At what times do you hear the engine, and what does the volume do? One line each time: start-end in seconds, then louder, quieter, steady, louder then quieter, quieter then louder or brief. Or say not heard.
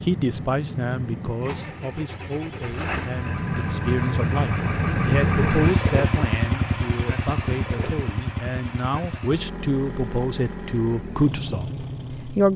0.0-12.5 louder then quieter.